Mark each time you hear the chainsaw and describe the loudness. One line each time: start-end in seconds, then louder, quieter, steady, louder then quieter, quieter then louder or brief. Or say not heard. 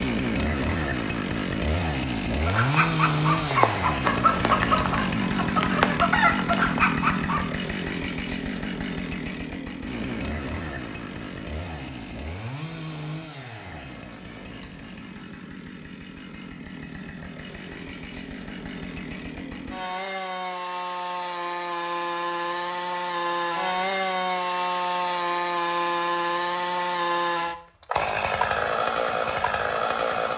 0.0-30.3 quieter then louder.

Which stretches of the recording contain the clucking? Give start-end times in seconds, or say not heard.
2.5-7.5.